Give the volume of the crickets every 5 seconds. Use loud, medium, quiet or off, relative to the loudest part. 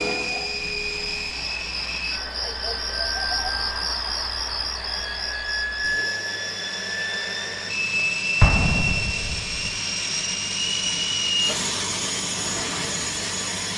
loud, medium, medium.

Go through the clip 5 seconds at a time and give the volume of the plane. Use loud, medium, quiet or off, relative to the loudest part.
medium, loud, loud.